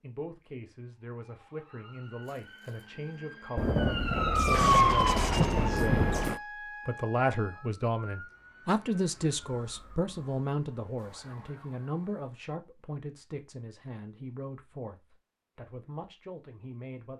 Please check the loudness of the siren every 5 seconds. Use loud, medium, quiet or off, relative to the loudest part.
loud, medium, quiet, off.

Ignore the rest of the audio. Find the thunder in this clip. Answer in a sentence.
You can hear the thunder from 3.5 to 6.4 s.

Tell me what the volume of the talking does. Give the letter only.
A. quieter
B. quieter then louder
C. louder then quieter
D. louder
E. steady
C.